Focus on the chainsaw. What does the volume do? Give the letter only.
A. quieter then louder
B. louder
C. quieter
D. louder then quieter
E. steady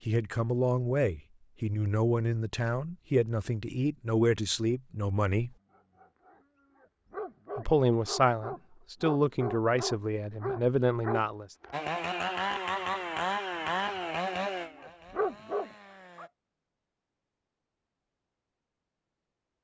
C.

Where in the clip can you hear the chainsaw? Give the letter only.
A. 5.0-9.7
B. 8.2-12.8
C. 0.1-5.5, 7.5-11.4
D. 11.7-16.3
D.